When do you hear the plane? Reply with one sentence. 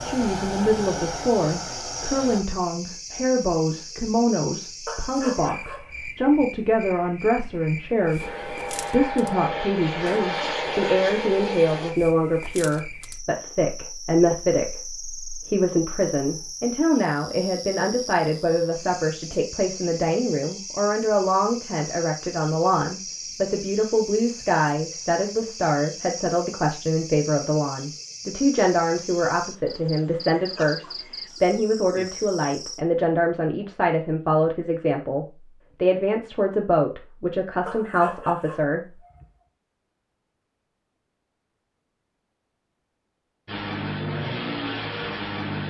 The plane can be heard from 0.0 to 2.4 s, from 8.2 to 11.9 s and from 43.5 to 45.6 s.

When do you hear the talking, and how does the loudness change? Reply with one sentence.
You can hear the talking from 0.0 to 39.0 s, at a steady volume.